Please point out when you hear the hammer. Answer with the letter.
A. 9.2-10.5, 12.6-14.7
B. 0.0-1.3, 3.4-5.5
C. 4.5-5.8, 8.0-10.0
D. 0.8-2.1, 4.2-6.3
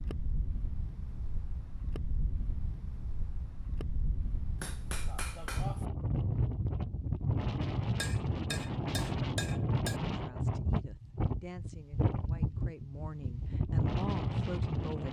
C.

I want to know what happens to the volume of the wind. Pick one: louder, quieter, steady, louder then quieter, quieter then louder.
louder.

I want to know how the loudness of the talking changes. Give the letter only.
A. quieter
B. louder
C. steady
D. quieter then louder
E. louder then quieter
B.